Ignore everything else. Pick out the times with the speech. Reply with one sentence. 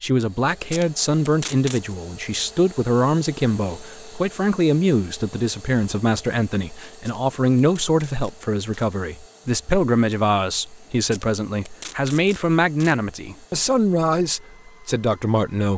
You can hear the speech from 0.0 to 15.7 s.